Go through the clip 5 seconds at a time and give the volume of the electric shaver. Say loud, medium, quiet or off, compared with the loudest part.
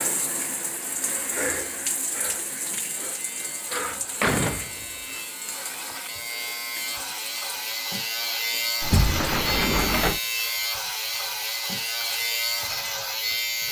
quiet, loud, loud.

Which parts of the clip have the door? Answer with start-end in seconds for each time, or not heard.
3.8-5.2, 8.8-10.2.